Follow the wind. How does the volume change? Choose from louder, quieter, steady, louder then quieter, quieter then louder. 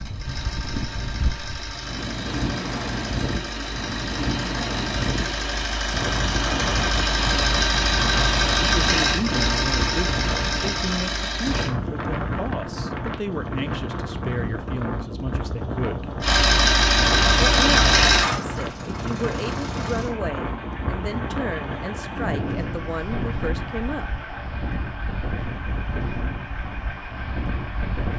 steady.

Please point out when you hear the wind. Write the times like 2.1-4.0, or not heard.
0.0-28.1.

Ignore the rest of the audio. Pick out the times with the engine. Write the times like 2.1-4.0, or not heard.
0.0-11.7, 16.2-28.1.